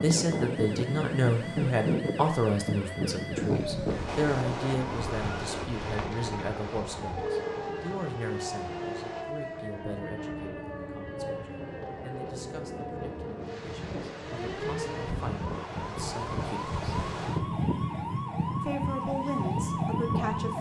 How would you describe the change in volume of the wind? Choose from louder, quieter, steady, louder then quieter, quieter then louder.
quieter then louder.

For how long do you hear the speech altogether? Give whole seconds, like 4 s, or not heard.
19 s.